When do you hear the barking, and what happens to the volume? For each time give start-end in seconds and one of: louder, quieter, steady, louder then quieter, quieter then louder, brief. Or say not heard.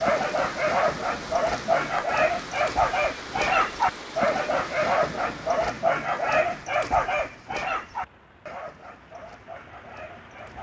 0.0-10.5 quieter.